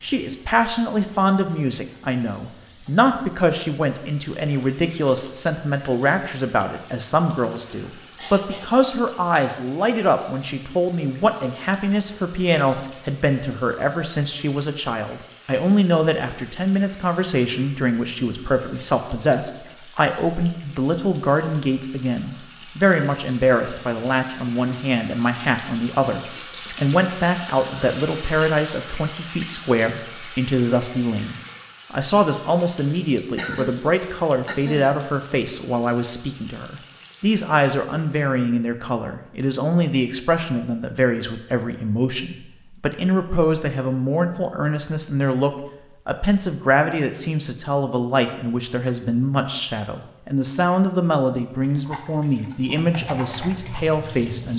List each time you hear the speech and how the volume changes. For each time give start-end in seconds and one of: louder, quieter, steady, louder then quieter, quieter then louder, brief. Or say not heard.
0.0-54.5 steady.